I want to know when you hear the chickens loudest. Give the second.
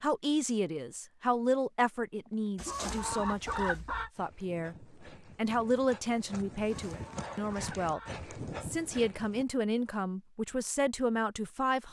4 s.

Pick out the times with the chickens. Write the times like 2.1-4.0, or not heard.
2.5-4.1, 6.6-8.2.